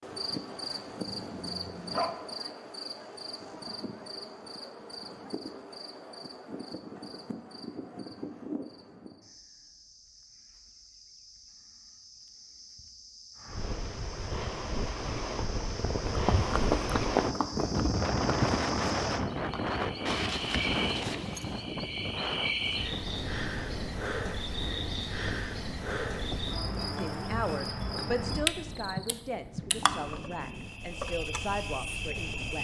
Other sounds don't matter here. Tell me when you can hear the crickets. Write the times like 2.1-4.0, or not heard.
0.0-32.5.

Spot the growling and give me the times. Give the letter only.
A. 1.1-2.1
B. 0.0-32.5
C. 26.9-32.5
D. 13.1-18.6
A.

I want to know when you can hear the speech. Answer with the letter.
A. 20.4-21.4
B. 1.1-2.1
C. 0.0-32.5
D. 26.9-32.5
D.